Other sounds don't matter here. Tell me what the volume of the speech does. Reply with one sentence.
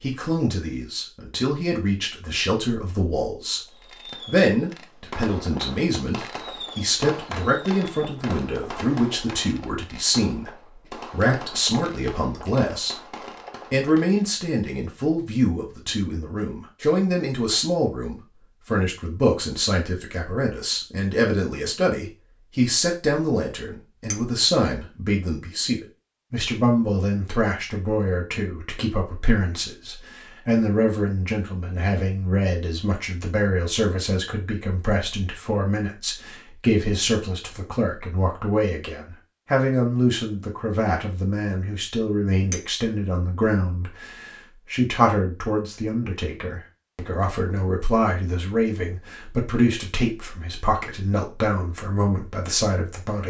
The loudness of the speech stays about the same.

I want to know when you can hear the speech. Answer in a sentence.
You can hear the speech from 0.0 to 13.1 s and from 13.7 to 53.2 s.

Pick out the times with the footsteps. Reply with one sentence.
You can't hear the footsteps here.